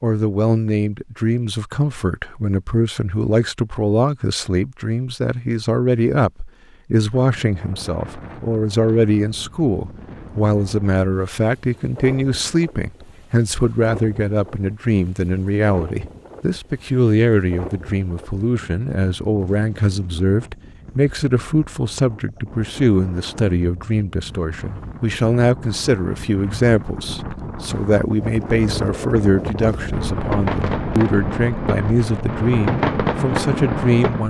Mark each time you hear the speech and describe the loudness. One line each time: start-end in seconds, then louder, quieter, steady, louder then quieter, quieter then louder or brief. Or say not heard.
0.0-34.2 steady.